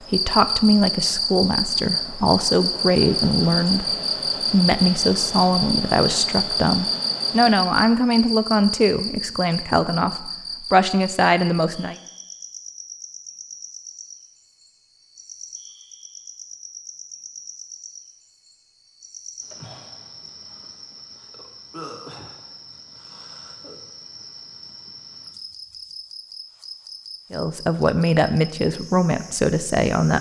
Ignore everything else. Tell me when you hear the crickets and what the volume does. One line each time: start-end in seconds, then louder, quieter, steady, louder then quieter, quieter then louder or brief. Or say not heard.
0.1-30.1 quieter.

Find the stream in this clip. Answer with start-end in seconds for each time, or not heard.
not heard.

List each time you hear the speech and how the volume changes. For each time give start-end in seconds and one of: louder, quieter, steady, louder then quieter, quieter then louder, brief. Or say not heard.
0.1-12.0 steady
27.3-30.1 brief.